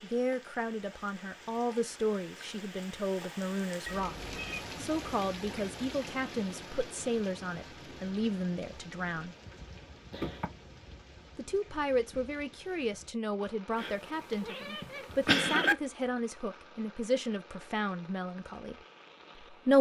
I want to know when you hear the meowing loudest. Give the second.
15 s.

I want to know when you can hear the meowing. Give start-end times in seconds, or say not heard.
3.9-4.6, 10.1-10.5, 13.8-15.8.